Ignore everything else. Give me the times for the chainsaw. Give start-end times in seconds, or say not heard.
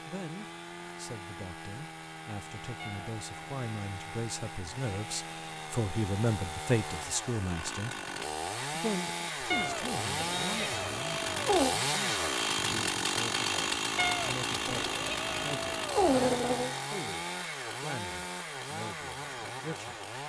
0.0-20.2.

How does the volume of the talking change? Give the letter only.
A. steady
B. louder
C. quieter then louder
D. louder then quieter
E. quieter
D.